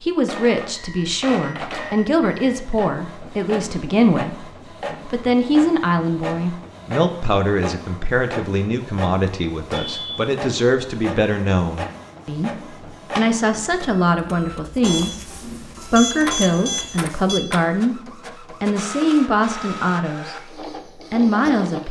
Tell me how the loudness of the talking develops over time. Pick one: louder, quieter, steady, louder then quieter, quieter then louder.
steady.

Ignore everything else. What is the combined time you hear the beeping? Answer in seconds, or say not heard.
5 s.